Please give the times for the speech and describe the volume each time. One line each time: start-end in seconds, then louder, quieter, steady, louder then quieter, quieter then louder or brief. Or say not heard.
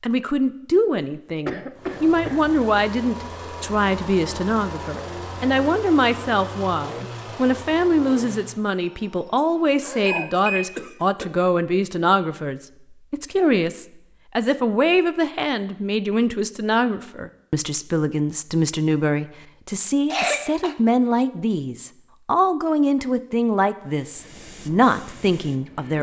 0.0-25.9 steady.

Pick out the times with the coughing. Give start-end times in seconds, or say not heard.
1.4-2.4, 9.3-11.3, 20.1-20.8.